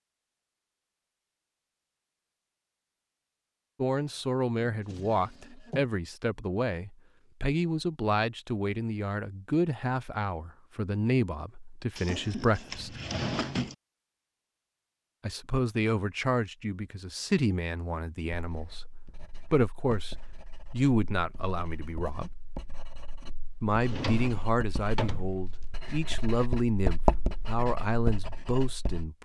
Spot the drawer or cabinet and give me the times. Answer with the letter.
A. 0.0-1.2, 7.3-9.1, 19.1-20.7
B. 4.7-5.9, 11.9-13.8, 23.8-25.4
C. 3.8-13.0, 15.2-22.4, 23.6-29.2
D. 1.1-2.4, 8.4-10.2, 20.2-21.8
B.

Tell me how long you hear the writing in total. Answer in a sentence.
The writing can be heard for 11 seconds in total.